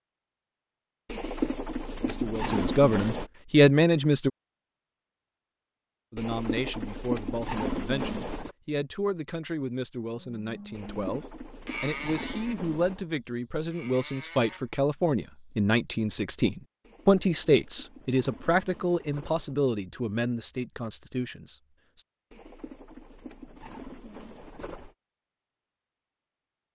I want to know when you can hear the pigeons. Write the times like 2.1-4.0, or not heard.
1.1-3.3, 6.2-8.6, 10.7-13.1, 16.8-19.6, 22.3-24.9.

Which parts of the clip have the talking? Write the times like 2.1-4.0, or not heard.
2.0-4.3, 6.1-22.1.